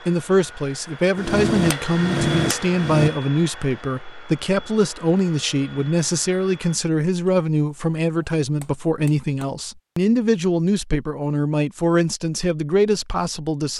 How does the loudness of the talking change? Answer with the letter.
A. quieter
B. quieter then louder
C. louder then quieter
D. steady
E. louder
D.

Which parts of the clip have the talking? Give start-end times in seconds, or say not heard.
0.1-13.7.